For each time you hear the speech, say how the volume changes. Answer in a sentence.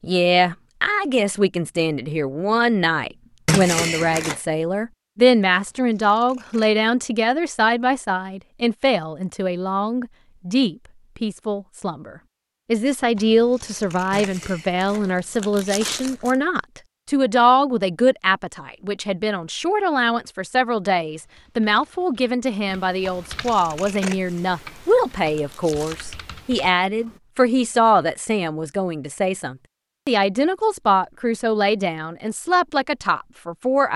You can hear the speech from 0.0 to 33.9 s, at a steady volume.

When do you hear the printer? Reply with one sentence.
The printer can't be heard in this clip.